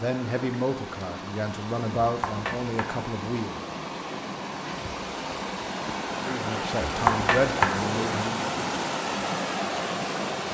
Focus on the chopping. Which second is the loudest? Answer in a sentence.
The loudest moment of the chopping is at 7 seconds.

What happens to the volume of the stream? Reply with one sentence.
The loudness of the stream goes up.